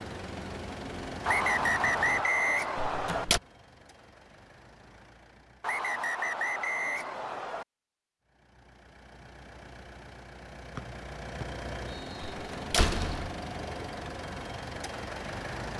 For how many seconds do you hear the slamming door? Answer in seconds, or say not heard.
2 s.